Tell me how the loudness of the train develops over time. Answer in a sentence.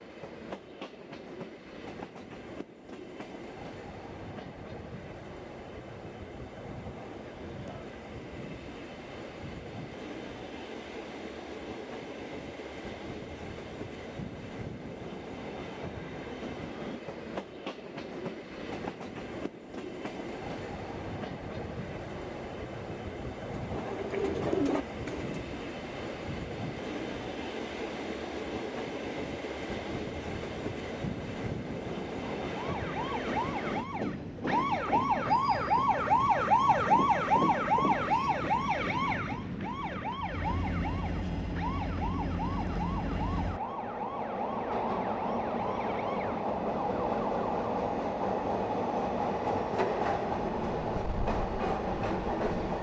The loudness of the train goes up.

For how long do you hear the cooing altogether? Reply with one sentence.
The cooing can be heard for 2 seconds in total.